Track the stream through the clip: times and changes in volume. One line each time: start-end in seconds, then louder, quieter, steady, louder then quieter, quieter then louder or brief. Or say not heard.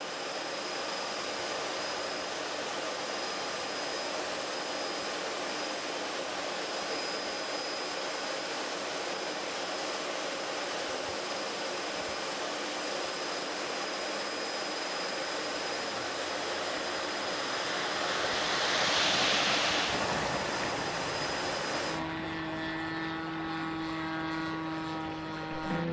0.0-25.8 louder then quieter.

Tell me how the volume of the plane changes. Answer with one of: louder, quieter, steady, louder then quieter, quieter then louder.
steady.